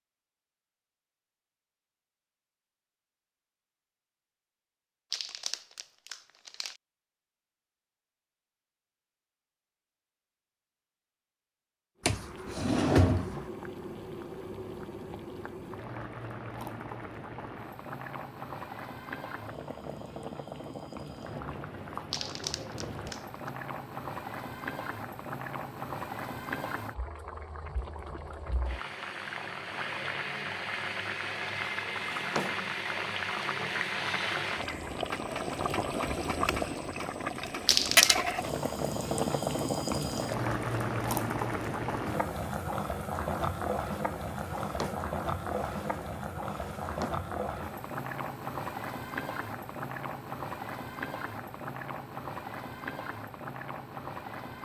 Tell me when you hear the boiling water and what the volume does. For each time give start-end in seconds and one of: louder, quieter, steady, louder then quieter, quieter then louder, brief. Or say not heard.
12.0-54.5 louder then quieter.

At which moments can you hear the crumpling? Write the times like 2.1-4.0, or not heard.
5.1-6.8, 22.1-23.5, 37.6-38.2.